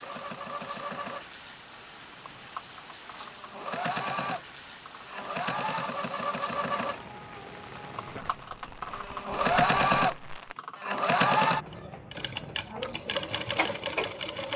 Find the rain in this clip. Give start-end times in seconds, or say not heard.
0.0-10.6.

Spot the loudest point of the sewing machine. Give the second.
10 s.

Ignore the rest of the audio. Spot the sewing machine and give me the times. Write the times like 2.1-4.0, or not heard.
0.0-14.5.